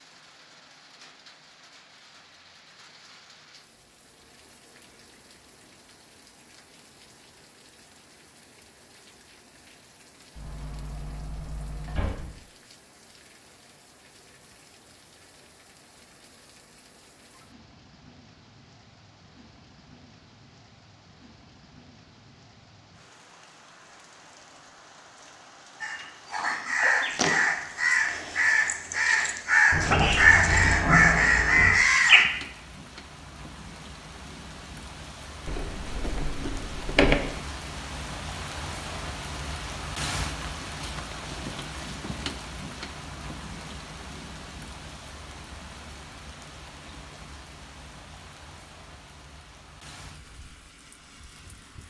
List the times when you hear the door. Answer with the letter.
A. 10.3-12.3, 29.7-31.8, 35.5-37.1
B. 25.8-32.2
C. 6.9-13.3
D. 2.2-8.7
A.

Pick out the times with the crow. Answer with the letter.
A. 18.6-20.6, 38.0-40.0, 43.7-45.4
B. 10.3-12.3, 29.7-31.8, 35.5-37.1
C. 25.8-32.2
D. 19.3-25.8
C.